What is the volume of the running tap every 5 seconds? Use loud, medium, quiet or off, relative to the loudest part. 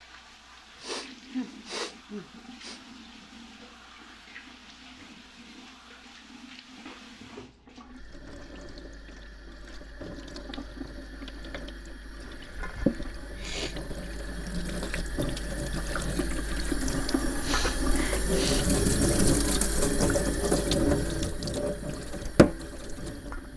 quiet, quiet, medium, loud, loud.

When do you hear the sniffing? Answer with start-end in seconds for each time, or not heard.
0.8-2.8, 13.2-13.8, 17.2-18.7.